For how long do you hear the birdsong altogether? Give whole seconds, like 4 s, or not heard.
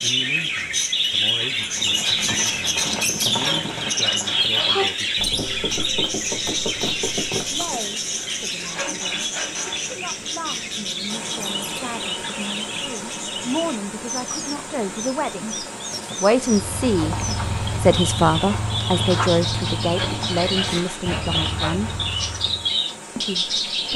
24 s.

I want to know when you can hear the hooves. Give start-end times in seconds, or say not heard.
1.7-7.9, 16.4-22.8.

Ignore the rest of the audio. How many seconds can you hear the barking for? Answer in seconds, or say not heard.
not heard.